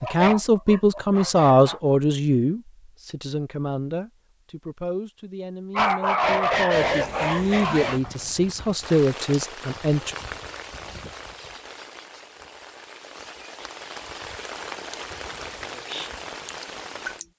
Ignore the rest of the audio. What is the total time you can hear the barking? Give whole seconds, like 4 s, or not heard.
4 s.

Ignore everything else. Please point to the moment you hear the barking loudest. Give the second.
6 s.